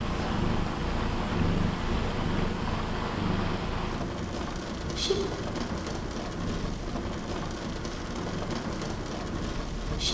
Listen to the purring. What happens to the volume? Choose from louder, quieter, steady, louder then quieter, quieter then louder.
quieter.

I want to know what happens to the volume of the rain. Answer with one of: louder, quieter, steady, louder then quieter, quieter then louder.
steady.